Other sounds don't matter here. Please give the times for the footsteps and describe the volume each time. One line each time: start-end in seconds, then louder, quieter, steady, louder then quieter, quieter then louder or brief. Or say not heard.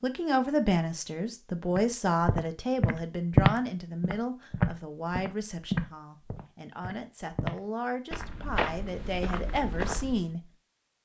1.8-10.2 quieter.